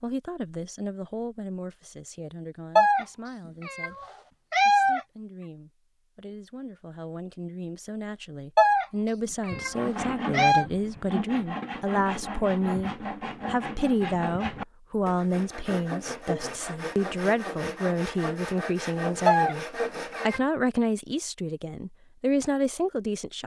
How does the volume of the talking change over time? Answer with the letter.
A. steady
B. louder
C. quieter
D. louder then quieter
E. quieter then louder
B.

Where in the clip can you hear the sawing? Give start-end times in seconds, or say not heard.
9.5-20.4.